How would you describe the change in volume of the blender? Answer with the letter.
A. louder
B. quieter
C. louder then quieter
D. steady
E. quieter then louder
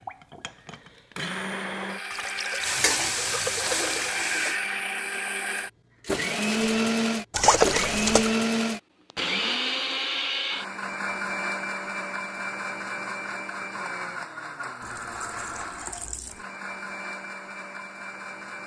C.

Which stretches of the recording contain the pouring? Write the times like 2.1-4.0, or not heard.
2.1-4.1, 7.3-8.3, 14.8-16.4.